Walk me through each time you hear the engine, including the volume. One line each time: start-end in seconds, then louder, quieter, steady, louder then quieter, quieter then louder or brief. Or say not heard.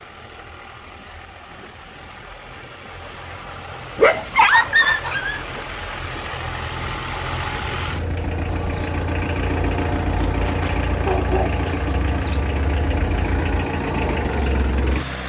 0.0-15.2 louder.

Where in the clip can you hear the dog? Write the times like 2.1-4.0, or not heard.
4.0-5.4, 10.4-11.6.